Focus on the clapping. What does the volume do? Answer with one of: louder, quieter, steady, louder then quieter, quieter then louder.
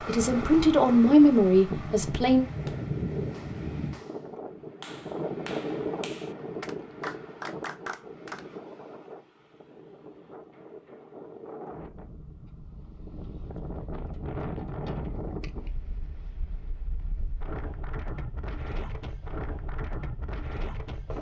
louder.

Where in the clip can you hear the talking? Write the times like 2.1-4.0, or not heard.
0.1-2.5.